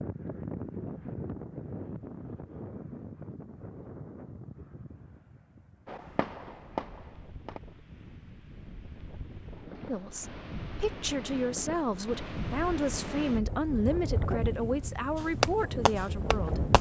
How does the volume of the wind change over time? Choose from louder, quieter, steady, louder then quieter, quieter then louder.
quieter then louder.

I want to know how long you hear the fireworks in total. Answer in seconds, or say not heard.
3 s.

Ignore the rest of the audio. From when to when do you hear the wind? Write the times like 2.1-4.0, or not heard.
0.0-16.7.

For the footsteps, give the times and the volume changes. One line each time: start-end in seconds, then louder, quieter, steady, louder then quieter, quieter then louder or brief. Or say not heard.
not heard.